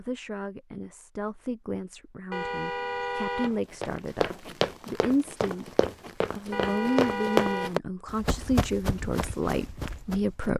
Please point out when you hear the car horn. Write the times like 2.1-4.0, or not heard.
2.3-3.6, 6.5-7.8.